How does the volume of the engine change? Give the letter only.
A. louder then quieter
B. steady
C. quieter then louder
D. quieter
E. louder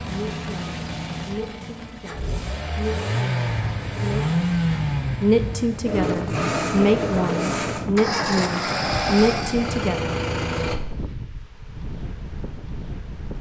E.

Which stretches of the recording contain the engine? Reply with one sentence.
You can hear the engine from 0.0 to 10.8 s.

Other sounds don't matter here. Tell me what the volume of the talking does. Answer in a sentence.
The volume of the talking goes up.